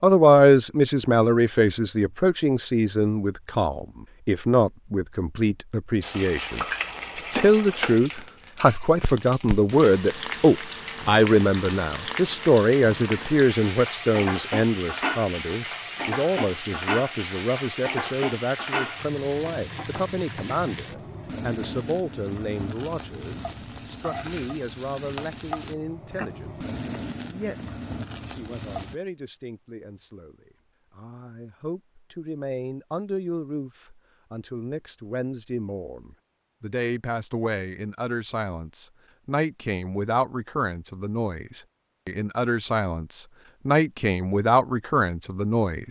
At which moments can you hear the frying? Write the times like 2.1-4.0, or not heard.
6.0-28.9.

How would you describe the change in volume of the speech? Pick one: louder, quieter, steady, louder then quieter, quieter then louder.
quieter then louder.